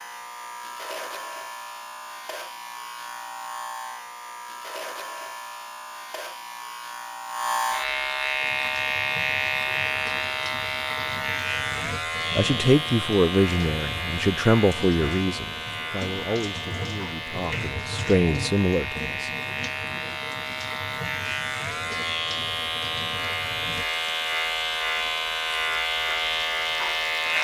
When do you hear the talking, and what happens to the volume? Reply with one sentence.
The talking can be heard from 11.7 to 19.3 s, getting quieter then louder.